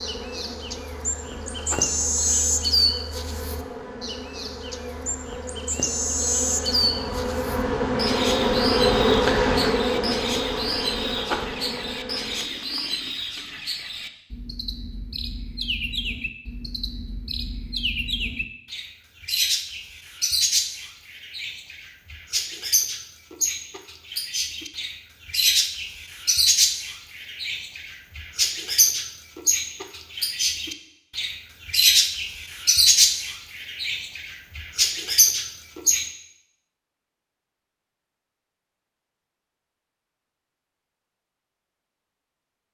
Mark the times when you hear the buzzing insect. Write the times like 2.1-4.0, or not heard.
0.0-12.5.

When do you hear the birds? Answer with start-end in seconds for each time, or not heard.
0.0-36.1.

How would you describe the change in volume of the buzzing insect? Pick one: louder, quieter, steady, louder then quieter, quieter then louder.
louder then quieter.